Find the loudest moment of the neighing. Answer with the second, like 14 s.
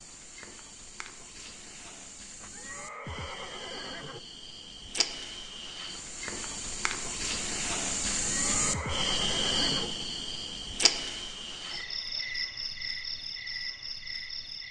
9 s.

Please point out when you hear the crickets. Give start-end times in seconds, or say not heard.
0.0-14.6.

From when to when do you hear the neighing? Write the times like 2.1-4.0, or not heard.
2.4-4.2, 8.2-9.9.